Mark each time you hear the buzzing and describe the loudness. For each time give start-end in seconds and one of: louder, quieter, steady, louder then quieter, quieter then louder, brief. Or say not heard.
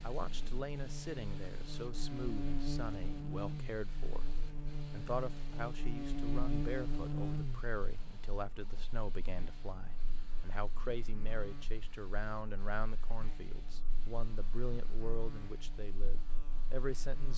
0.0-17.3 quieter.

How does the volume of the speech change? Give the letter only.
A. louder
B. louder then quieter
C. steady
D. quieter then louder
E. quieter
C.